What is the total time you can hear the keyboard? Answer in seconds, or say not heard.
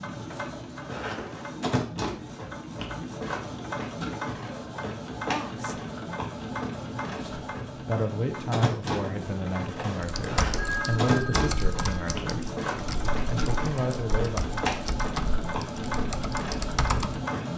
7 s.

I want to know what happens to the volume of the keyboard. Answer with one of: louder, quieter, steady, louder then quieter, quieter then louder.
quieter then louder.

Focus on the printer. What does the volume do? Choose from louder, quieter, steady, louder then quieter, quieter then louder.
steady.